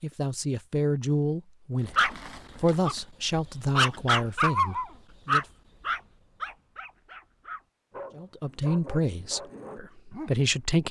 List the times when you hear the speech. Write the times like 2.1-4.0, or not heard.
0.0-5.5, 8.2-10.8.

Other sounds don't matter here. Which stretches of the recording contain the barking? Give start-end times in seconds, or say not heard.
1.9-10.7.